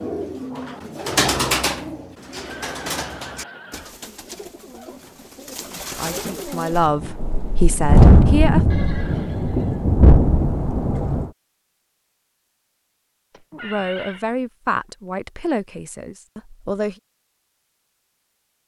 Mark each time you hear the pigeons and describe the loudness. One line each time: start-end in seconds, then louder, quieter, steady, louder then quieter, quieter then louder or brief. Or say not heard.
0.0-6.8 quieter then louder.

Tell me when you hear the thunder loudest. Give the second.
8 s.